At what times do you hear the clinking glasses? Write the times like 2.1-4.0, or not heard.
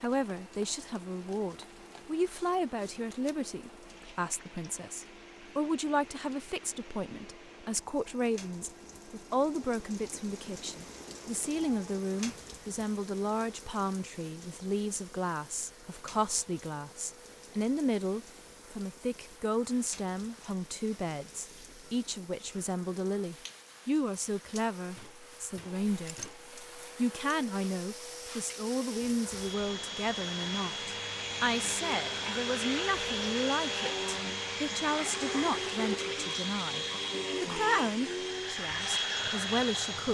25.9-26.4.